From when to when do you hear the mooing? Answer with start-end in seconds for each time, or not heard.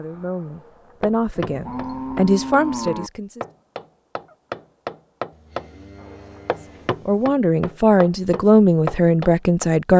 1.4-3.1, 5.3-7.2.